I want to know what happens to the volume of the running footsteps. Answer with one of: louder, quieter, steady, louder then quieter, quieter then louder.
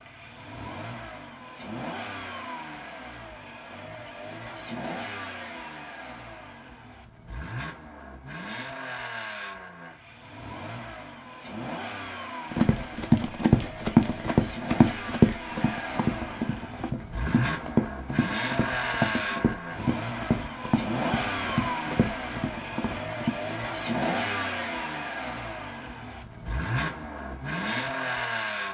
quieter.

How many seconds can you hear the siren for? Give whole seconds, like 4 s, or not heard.
not heard.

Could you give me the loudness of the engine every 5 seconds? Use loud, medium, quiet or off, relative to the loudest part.
medium, medium, medium, loud, loud, loud.